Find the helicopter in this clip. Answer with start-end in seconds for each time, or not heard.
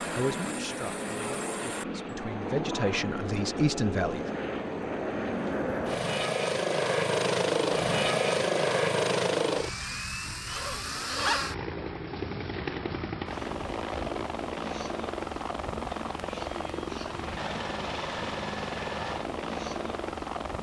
0.0-20.5.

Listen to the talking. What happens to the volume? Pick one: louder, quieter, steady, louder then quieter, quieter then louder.
quieter then louder.